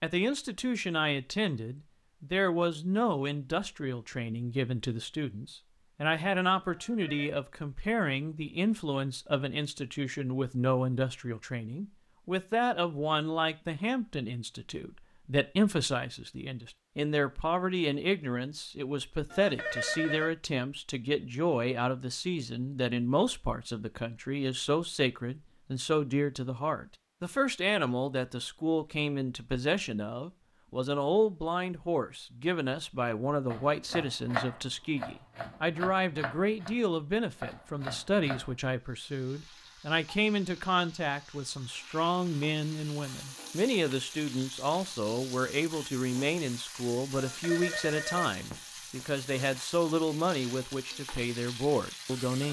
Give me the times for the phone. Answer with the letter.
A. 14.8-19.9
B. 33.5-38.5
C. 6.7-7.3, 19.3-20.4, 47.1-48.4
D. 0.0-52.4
C.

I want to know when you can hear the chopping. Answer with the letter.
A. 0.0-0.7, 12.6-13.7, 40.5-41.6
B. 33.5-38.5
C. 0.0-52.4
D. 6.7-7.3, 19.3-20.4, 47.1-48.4
B.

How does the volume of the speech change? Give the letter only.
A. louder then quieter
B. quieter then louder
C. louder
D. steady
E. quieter
D.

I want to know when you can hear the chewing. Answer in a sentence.
You can't hear the chewing here.